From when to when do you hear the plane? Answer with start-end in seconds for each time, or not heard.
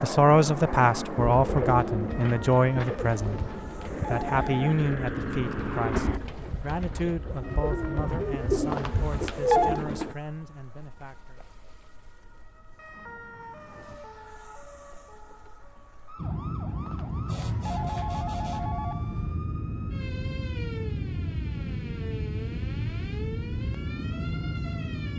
0.0-6.2, 16.1-25.1.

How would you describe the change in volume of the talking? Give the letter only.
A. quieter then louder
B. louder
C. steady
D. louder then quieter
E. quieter
E.